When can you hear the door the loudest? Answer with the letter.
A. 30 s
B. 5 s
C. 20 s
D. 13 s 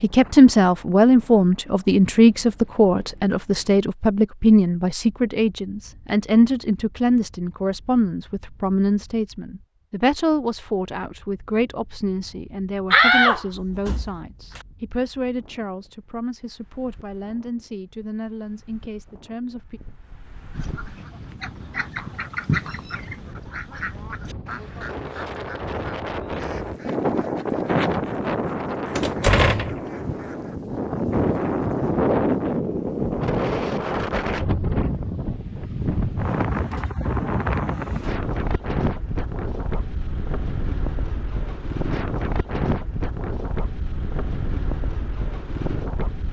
D.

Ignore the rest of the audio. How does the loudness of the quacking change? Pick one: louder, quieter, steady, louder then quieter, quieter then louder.
louder then quieter.